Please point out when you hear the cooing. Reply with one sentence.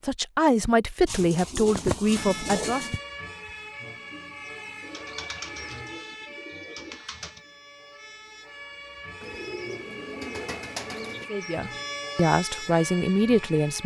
You can hear the cooing from 1.1 to 3.0 s, from 4.8 to 7.4 s and from 9.2 to 11.3 s.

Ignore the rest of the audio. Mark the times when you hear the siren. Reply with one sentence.
You can hear the siren from 2.0 to 13.8 s.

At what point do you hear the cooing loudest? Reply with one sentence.
The volume of the cooing peaks at 2 seconds.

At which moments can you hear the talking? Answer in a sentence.
The talking can be heard from 0.0 to 2.9 s and from 11.3 to 13.8 s.